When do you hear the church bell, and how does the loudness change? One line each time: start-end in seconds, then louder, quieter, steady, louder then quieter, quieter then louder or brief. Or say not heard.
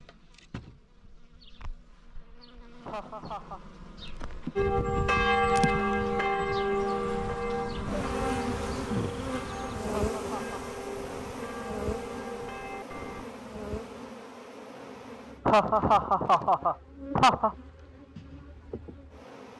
4.5-13.2 quieter.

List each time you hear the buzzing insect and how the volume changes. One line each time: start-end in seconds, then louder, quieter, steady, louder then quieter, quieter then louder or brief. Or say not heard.
0.0-19.5 louder then quieter.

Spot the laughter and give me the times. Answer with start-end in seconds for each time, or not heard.
2.9-3.6, 9.8-10.6, 15.4-17.6.